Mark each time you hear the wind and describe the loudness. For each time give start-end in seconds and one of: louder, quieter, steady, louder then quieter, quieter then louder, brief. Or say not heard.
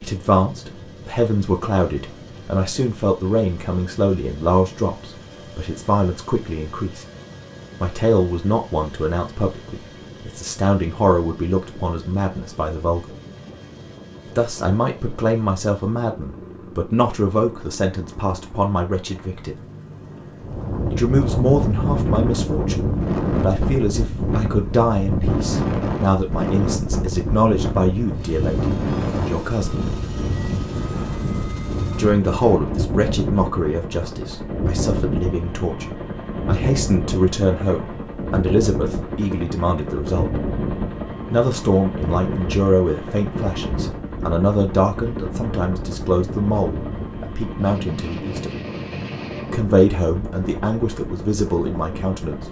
20.4-52.4 quieter.